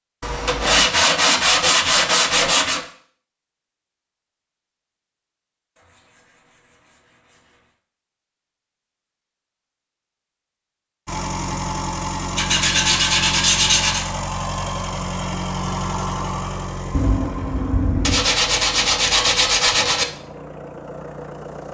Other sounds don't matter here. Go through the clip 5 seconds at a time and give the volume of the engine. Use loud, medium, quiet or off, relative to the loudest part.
off, off, loud, loud, medium.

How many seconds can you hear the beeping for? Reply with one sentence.
You can hear the beeping for 2 seconds altogether.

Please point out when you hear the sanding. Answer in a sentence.
You can hear the sanding from 0.5 to 2.9 s, from 5.8 to 7.8 s, from 12.3 to 14.1 s and from 18.0 to 20.1 s.